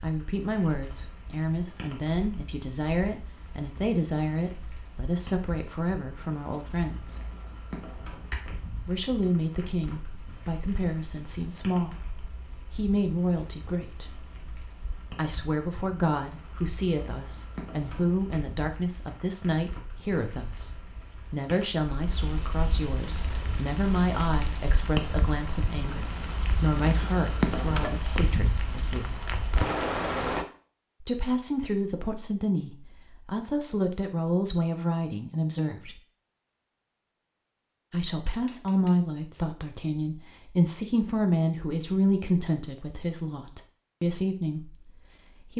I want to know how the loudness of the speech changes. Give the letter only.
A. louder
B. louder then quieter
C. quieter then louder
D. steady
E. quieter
D.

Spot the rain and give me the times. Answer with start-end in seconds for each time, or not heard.
0.0-30.4.